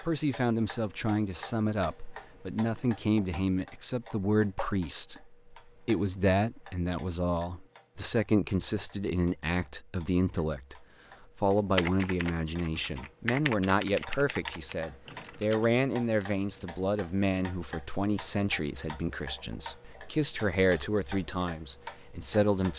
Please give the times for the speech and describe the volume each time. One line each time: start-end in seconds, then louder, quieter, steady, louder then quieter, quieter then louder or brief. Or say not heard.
0.0-22.7 steady.